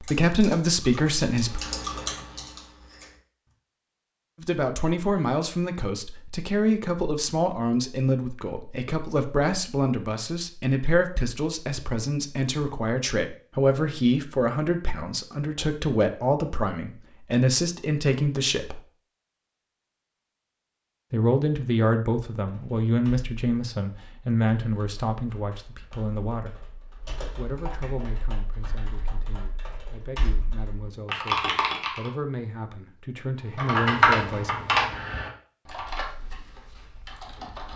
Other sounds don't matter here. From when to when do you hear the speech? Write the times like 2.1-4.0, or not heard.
0.0-1.6, 4.4-18.8, 21.1-26.6, 27.4-34.5.